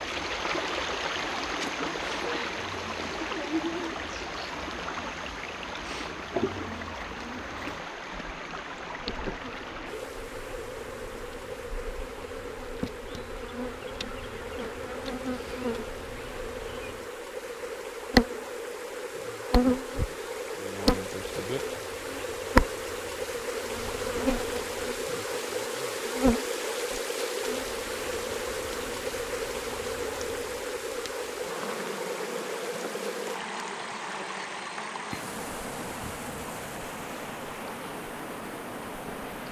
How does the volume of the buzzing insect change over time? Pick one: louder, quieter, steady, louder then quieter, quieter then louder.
louder then quieter.